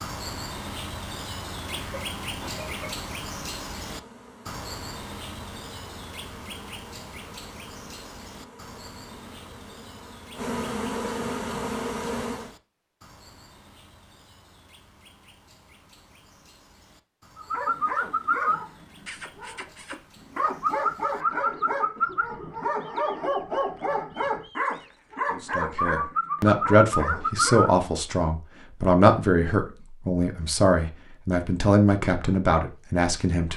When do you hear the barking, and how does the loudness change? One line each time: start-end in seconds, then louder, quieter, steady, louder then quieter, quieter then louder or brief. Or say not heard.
17.4-27.8 steady.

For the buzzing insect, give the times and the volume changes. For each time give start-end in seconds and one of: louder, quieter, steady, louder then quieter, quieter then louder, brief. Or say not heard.
3.8-12.6 louder.